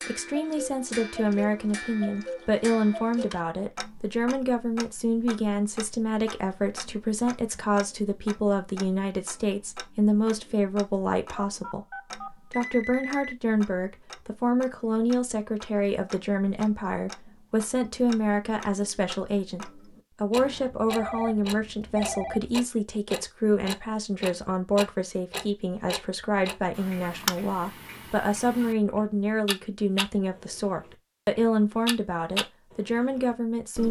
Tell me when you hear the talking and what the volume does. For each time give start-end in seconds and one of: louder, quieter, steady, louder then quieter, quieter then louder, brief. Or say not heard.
0.1-33.8 steady.